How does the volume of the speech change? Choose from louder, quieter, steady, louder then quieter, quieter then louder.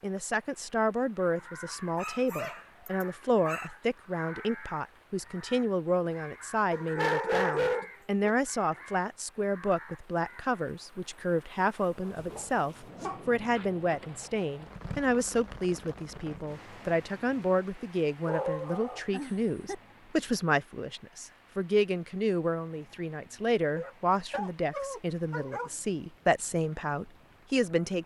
steady.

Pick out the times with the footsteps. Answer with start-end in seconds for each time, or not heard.
not heard.